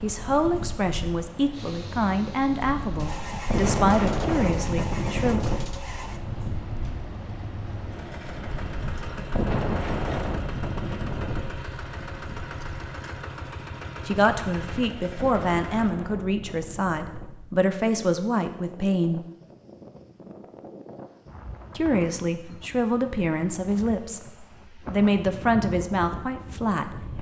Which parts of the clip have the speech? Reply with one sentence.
The speech can be heard from 0.0 to 5.4 s, from 14.1 to 19.2 s and from 21.8 to 27.1 s.